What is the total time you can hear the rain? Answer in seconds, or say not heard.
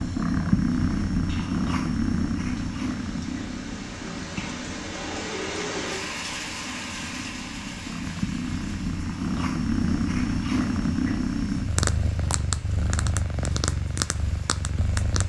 15 s.